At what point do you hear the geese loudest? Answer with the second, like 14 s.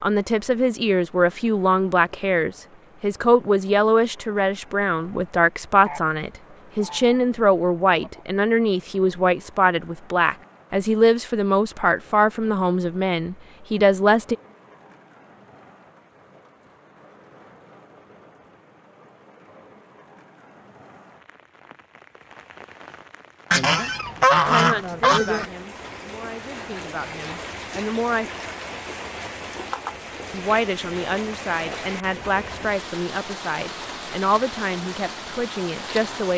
24 s.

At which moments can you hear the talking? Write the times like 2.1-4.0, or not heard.
0.0-14.3, 24.4-28.3, 30.3-36.3.